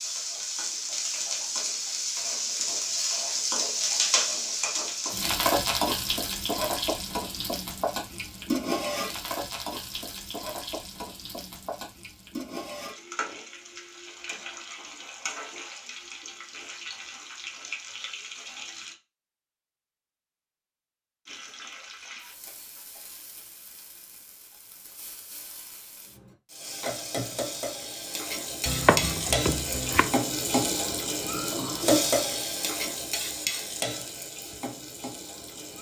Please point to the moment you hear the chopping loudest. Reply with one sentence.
The loudest moment of the chopping is at 29 seconds.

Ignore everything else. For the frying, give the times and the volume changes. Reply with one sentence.
You can hear the frying from 0.0 to 18.9 s, getting quieter; and from 21.2 to 35.7 s, getting louder then quieter.